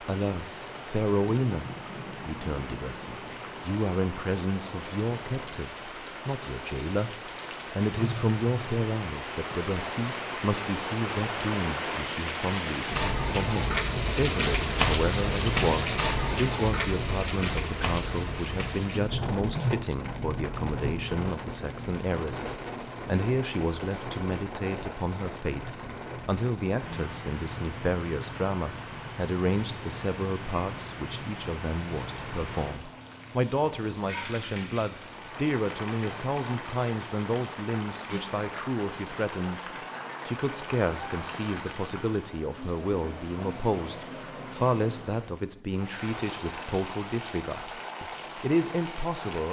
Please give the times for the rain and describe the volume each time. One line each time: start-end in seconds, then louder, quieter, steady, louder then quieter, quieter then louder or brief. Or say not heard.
0.0-49.4 louder then quieter.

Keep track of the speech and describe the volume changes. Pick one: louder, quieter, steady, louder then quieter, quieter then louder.
steady.